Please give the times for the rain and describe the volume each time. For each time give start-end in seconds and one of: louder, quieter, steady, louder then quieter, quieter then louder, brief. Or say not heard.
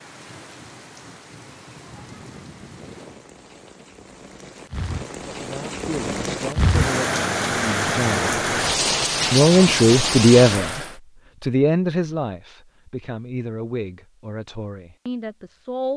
0.0-10.9 louder.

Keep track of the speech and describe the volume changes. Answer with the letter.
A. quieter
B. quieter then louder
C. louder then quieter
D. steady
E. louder
C.